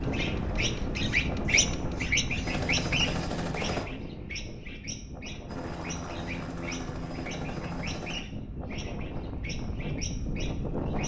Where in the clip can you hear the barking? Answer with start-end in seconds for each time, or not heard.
not heard.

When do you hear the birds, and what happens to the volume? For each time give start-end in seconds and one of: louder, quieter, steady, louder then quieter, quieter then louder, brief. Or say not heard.
0.0-11.0 quieter.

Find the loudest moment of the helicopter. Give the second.
3 s.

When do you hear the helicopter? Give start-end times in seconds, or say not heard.
0.0-3.9, 5.5-8.2.